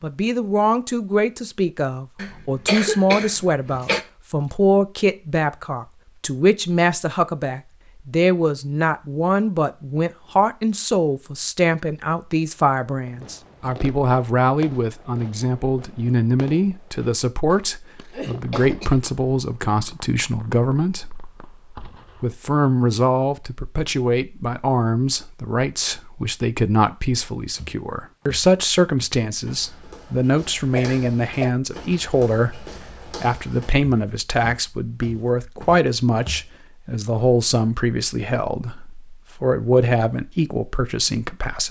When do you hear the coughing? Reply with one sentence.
The coughing can be heard from 2.1 to 4.0 s, from 18.1 to 18.9 s and from 30.8 to 31.6 s.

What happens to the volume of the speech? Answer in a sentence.
The volume of the speech stays about the same.